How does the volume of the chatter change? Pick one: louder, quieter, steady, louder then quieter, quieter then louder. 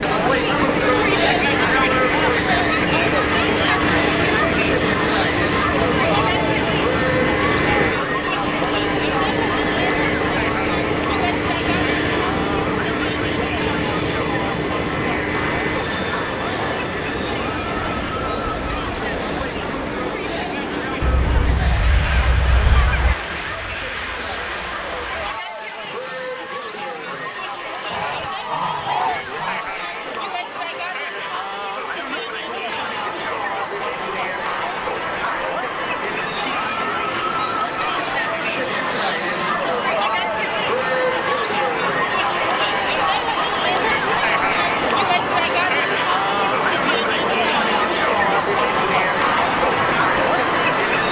quieter then louder.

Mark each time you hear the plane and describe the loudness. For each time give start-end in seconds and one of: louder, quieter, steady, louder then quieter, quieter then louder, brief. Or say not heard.
0.0-51.0 quieter then louder.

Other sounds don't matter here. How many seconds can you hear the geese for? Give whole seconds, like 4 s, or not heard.
4 s.